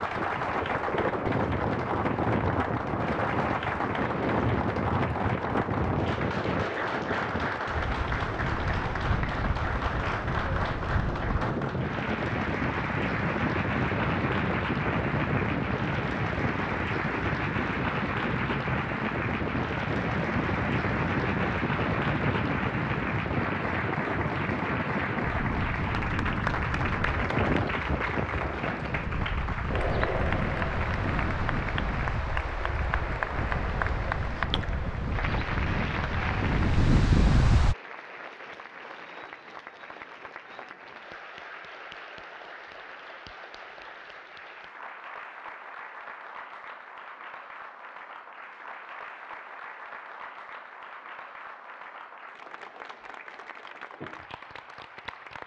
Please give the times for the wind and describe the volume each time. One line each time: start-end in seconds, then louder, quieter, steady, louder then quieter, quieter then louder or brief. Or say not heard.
0.0-37.8 steady.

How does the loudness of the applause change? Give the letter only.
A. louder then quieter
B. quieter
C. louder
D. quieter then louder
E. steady
B.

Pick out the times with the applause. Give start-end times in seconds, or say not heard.
0.0-55.4.